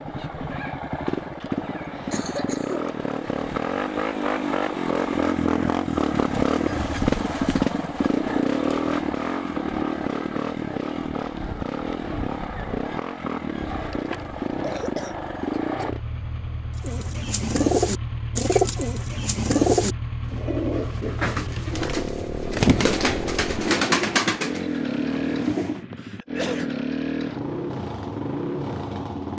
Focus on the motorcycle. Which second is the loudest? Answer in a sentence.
The volume of the motorcycle peaks at 7 seconds.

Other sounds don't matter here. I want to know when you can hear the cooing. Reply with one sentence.
You can hear the cooing from 16.8 to 25.9 s.